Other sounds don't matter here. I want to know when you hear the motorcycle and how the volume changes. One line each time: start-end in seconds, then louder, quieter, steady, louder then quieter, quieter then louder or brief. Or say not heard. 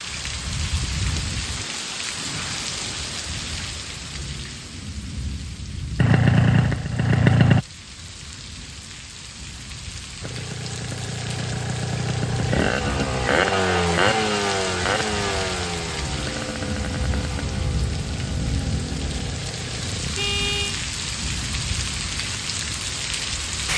6.0-7.7 brief
10.2-20.1 louder then quieter.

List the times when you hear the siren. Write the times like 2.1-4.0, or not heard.
not heard.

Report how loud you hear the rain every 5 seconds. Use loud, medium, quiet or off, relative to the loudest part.
loud, medium, medium, loud, loud.